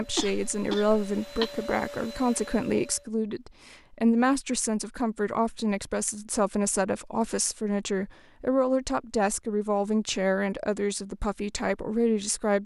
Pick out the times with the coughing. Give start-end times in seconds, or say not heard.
0.1-1.6.